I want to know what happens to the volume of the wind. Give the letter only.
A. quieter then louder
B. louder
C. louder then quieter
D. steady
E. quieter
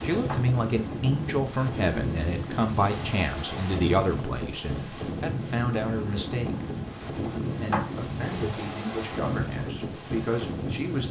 D.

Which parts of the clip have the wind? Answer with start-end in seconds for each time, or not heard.
0.0-11.0.